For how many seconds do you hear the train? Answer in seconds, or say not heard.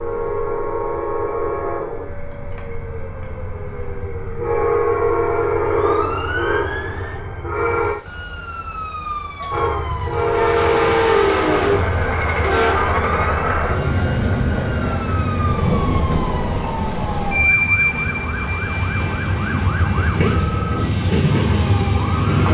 21 s.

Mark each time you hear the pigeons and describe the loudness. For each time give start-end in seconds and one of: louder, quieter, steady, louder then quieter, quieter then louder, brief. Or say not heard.
not heard.